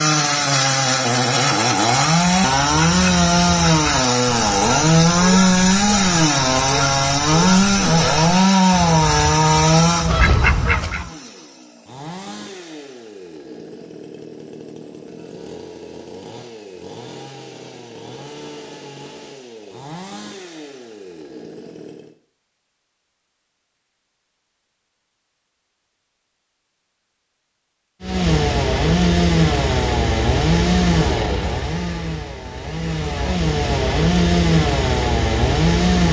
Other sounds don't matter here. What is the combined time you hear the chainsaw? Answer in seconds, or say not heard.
30 s.